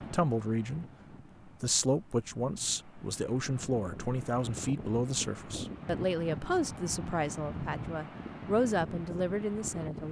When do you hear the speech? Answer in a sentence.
You can hear the speech from 0.0 to 0.8 s and from 1.4 to 10.0 s.